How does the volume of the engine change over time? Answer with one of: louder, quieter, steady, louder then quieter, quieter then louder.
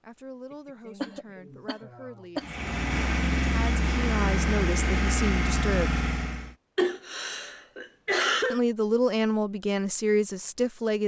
steady.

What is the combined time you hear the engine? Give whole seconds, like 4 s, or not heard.
4 s.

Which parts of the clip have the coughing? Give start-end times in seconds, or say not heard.
0.5-2.5, 6.8-8.6.